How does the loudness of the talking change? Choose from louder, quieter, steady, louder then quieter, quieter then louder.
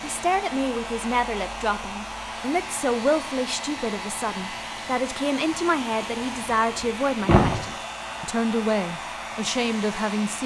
steady.